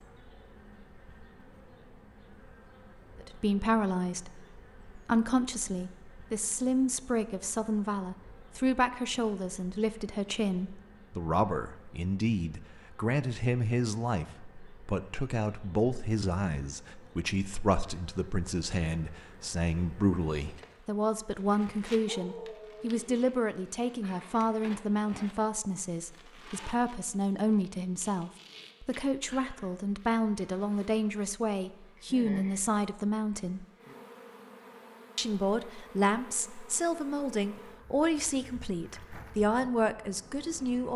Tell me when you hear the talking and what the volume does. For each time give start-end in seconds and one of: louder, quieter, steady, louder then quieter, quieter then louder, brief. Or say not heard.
3.2-33.6 steady
35.1-40.9 steady.